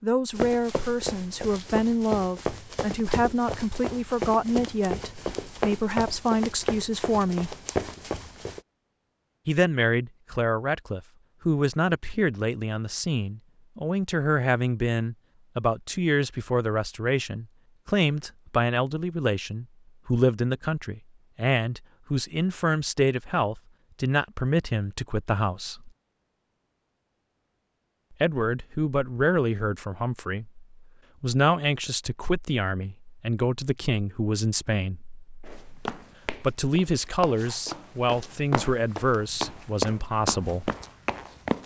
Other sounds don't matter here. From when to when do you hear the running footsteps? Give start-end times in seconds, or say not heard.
0.3-8.6, 35.5-41.6.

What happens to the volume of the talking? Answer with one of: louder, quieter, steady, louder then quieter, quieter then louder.
steady.